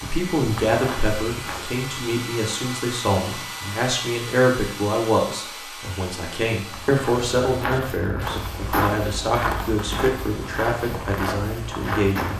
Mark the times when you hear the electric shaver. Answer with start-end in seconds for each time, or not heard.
not heard.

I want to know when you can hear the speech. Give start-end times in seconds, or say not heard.
0.0-12.3.